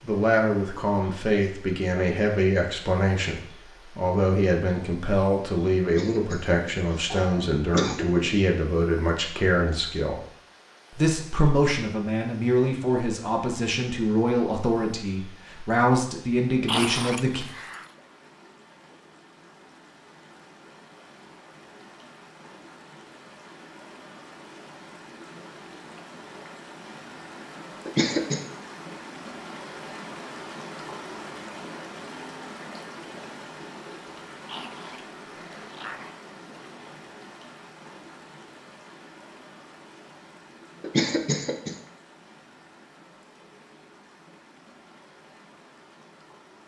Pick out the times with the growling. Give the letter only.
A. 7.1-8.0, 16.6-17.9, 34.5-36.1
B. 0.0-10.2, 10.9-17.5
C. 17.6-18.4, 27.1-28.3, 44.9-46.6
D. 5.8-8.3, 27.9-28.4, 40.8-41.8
A.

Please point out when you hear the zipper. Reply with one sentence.
The zipper can't be heard in this clip.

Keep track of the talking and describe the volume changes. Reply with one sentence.
The volume of the talking stays about the same.